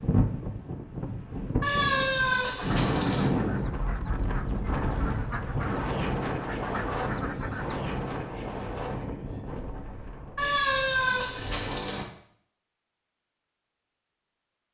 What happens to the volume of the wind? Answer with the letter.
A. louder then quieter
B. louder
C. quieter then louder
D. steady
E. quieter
A.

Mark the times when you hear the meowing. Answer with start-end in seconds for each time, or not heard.
1.6-3.3, 10.3-12.1.